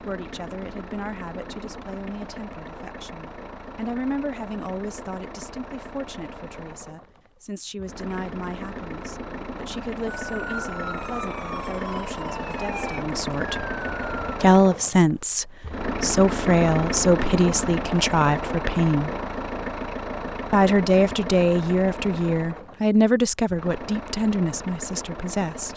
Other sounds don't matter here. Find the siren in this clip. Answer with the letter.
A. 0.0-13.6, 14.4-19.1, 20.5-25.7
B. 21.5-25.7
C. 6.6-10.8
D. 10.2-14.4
D.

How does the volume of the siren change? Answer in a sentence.
The volume of the siren stays about the same.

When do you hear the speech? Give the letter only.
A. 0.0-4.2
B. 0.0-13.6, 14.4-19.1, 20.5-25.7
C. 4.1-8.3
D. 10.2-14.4
B.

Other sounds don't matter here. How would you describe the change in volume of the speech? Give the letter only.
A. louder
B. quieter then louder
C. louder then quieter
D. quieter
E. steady
A.